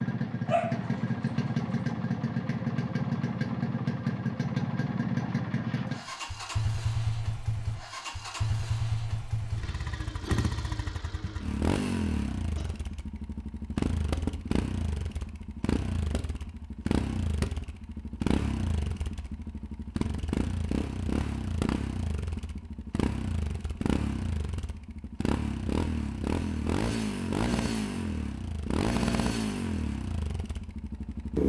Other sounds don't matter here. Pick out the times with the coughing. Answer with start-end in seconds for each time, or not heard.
12.6-13.2.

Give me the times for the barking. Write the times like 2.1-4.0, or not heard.
0.5-1.6.